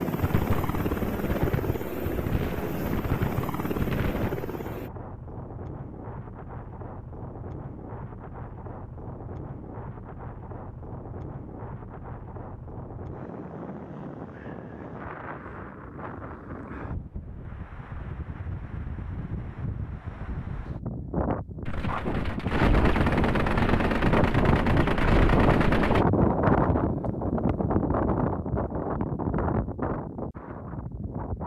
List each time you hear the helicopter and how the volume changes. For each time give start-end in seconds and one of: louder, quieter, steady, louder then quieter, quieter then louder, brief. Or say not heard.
0.0-4.9 steady.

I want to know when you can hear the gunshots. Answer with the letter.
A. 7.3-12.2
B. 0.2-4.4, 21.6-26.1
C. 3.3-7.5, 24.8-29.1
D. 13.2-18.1
B.